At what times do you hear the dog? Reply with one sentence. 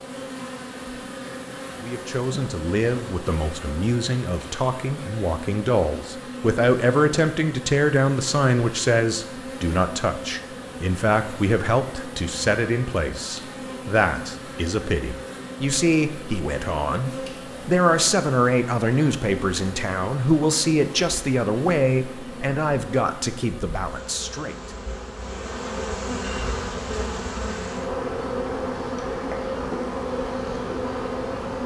The dog can't be heard in this clip.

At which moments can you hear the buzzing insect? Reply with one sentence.
You can hear the buzzing insect from 0.0 to 31.6 s.